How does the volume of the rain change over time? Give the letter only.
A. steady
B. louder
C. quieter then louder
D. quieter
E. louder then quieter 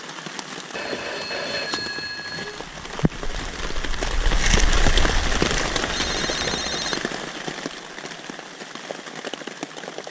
E.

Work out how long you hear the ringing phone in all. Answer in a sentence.
The ringing phone can be heard for 4 seconds in total.